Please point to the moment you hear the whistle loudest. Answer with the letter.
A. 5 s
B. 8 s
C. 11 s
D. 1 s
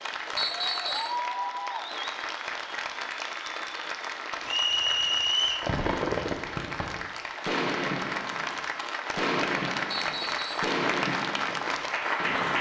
A.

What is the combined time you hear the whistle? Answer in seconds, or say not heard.
3 s.